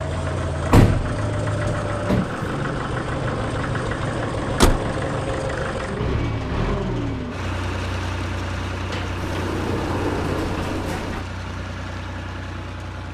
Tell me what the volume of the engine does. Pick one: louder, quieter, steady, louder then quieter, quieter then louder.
quieter.